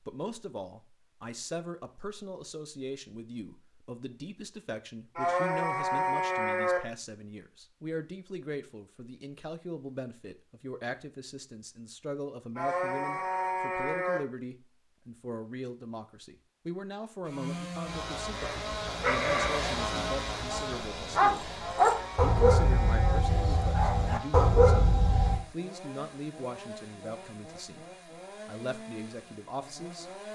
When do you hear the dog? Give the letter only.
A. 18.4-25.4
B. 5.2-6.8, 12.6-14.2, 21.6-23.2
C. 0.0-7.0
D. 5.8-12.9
A.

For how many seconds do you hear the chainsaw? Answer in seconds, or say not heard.
13 s.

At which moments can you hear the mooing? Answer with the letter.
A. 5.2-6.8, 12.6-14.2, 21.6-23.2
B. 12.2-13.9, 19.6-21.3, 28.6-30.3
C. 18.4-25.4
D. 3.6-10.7
A.